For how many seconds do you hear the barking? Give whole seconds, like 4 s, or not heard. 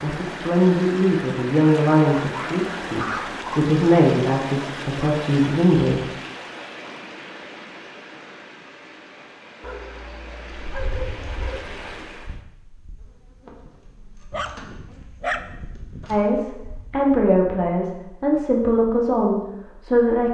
5 s.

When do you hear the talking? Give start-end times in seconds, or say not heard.
0.0-6.0, 16.1-20.2.